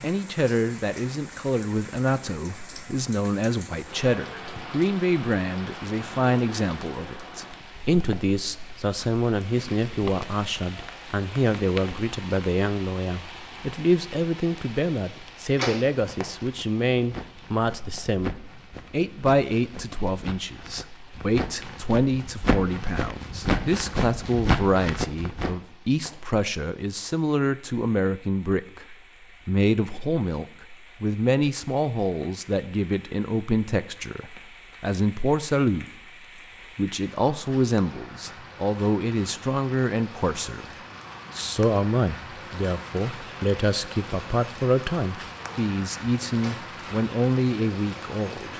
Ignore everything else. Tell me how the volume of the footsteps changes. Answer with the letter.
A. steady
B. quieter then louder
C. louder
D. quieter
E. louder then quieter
C.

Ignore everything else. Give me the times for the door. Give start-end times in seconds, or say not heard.
15.4-15.8, 46.3-46.7.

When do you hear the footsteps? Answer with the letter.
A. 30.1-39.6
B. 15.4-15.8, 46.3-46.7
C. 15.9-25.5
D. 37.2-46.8
C.